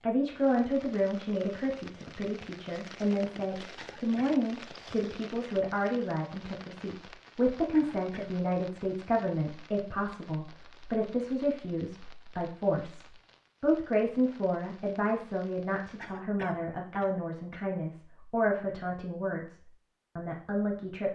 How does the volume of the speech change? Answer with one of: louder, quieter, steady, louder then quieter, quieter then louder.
steady.